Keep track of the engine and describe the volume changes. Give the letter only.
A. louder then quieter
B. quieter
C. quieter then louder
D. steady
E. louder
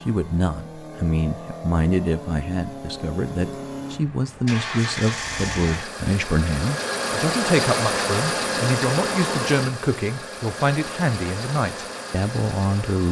A.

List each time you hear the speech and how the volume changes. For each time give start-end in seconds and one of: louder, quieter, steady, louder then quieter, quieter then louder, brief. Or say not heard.
0.1-13.0 steady.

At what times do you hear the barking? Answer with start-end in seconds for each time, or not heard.
not heard.